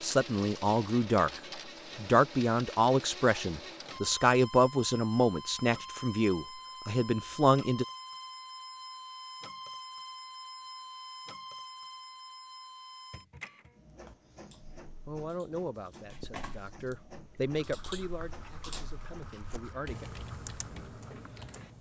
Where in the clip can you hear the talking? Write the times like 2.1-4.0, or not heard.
0.0-1.3, 1.9-7.8, 15.1-20.1.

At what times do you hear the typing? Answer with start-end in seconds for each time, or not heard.
13.8-21.7.